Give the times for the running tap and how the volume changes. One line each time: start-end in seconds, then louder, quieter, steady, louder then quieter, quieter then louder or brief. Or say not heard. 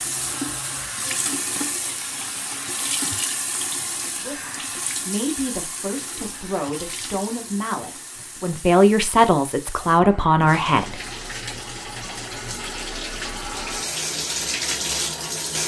0.0-15.6 quieter then louder.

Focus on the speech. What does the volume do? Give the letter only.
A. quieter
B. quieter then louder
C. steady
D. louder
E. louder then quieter
D.